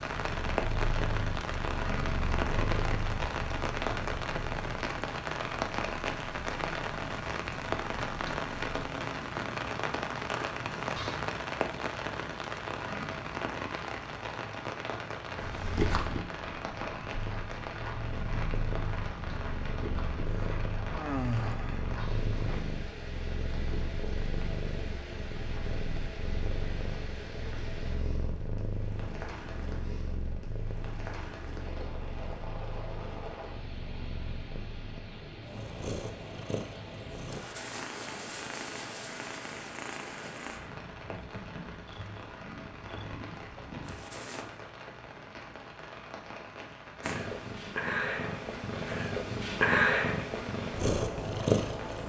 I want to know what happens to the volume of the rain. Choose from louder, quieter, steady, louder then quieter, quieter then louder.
quieter.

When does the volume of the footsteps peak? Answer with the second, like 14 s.
16 s.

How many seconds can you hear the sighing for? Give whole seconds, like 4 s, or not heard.
2 s.